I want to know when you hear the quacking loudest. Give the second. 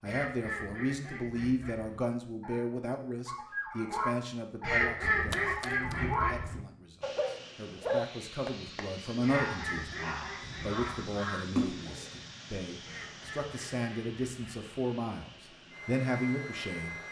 5 s.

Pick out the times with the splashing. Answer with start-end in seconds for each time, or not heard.
5.3-6.0, 11.6-12.1.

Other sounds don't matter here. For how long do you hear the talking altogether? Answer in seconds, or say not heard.
17 s.